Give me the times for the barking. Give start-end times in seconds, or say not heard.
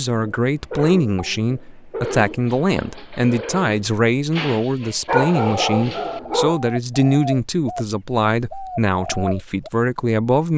5.0-6.6.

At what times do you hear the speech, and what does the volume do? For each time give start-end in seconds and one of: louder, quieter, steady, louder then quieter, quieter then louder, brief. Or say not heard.
0.0-10.5 steady.